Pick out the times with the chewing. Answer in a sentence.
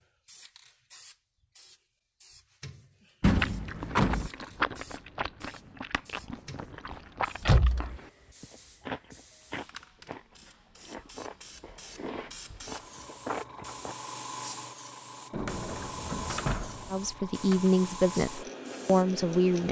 The chewing can be heard from 3.4 to 13.9 s.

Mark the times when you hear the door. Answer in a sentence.
The door can be heard from 3.2 to 4.3 s, from 7.4 to 8.0 s and from 15.3 to 17.7 s.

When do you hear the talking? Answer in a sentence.
You can hear the talking from 16.9 to 19.6 s.